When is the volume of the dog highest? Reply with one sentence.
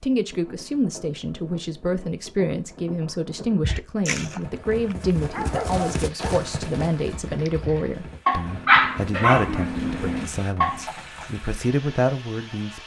The loudest moment of the dog is at 9 seconds.